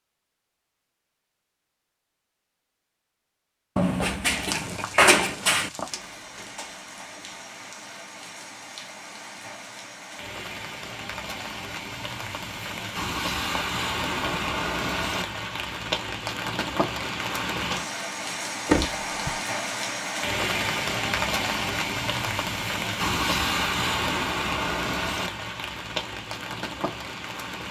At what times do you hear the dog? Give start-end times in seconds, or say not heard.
not heard.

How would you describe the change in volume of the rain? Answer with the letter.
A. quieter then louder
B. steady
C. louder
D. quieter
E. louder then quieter
C.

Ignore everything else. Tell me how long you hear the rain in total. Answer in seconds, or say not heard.
23 s.